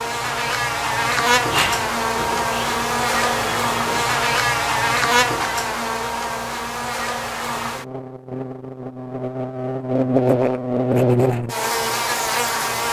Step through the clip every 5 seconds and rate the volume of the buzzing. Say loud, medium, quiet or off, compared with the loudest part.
loud, medium, loud.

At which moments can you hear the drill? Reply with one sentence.
You can hear the drill from 1.5 to 4.1 s.